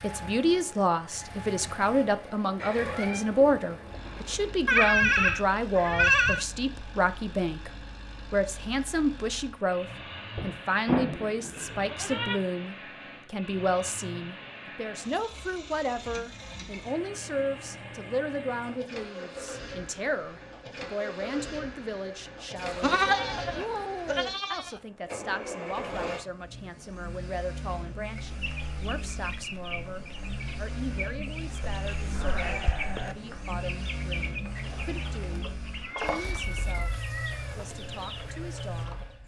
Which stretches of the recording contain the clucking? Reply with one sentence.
You can hear the clucking from 28.0 to 39.1 s.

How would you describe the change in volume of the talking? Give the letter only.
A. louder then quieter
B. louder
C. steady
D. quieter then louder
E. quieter
E.